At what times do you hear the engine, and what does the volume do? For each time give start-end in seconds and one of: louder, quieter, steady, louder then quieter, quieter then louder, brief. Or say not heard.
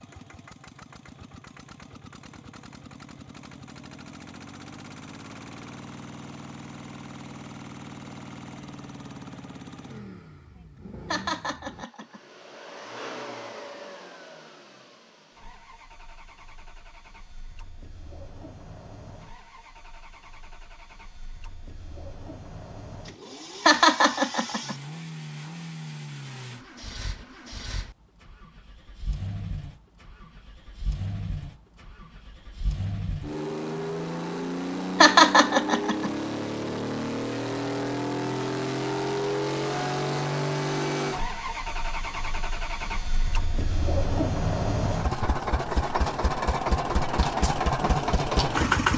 0.0-48.9 louder.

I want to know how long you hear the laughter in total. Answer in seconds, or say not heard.
3 s.